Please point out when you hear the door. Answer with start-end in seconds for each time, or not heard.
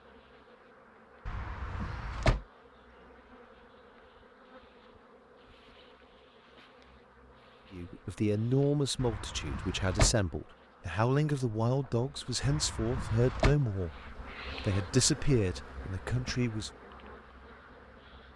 1.2-2.5, 8.9-10.2, 12.4-13.6.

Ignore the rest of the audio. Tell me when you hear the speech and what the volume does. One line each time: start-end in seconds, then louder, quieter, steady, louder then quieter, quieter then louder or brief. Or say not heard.
7.7-16.7 steady.